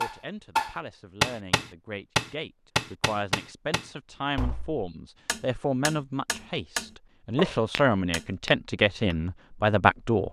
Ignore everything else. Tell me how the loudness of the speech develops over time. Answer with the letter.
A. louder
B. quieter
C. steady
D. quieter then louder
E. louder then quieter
A.